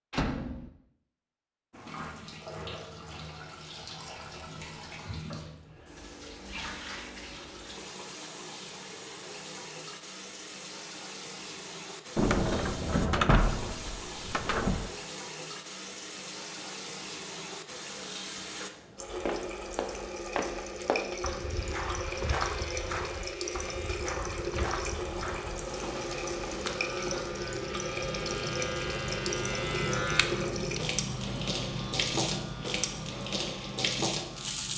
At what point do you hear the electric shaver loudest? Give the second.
30 s.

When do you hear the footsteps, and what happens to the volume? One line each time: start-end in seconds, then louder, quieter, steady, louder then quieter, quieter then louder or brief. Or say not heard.
19.2-27.3 quieter.